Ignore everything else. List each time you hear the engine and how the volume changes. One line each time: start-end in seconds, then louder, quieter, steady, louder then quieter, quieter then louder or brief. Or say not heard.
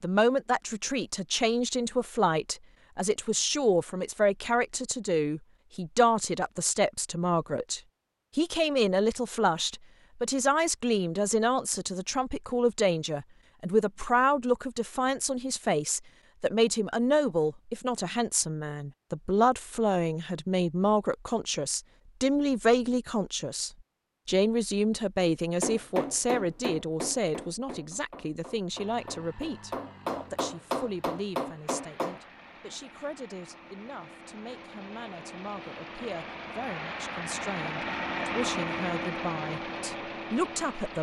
28.6-40.9 louder.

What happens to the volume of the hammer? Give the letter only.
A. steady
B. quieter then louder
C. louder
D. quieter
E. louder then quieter
B.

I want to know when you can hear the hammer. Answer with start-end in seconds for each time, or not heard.
25.6-32.2.